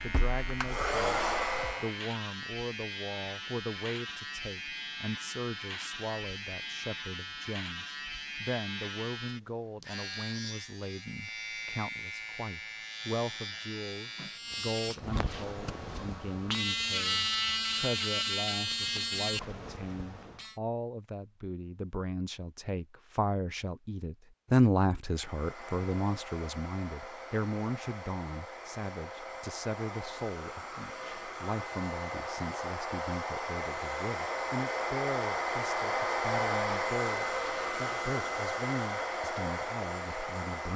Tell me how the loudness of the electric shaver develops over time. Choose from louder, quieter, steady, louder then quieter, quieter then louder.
louder.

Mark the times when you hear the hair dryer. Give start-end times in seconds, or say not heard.
0.0-1.9, 25.1-40.7.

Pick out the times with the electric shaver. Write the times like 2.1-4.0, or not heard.
0.0-20.6.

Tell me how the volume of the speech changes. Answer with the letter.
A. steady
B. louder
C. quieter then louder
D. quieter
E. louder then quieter
E.